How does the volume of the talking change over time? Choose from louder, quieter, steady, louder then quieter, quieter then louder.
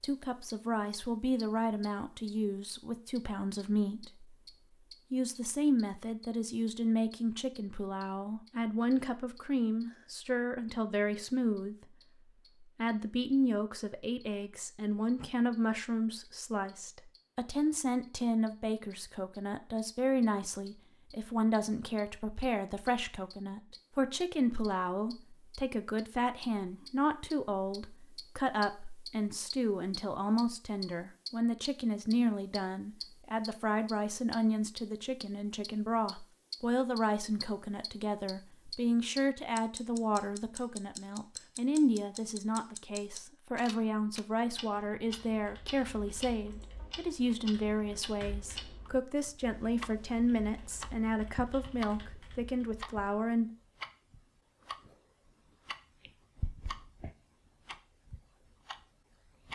steady.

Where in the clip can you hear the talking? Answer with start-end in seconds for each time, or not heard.
0.0-4.3, 5.1-11.8, 12.6-53.5.